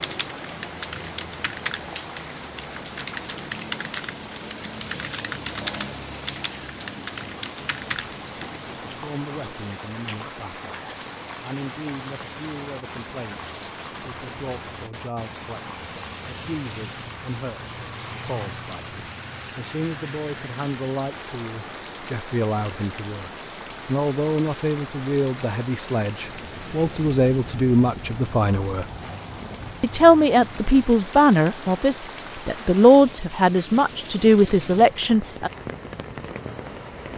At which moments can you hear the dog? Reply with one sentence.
You can't hear the dog here.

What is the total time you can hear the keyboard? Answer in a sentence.
The keyboard can be heard for 9 seconds in total.